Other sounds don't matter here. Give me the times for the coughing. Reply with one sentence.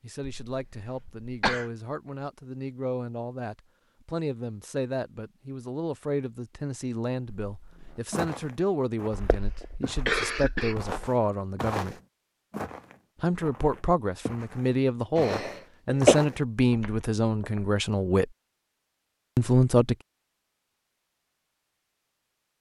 The coughing can be heard from 0.5 to 1.7 s, from 9.1 to 10.9 s and from 15.2 to 16.1 s.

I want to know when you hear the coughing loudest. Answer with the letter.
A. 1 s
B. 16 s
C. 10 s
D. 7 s
B.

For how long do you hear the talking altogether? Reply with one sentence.
You can hear the talking for 18 seconds altogether.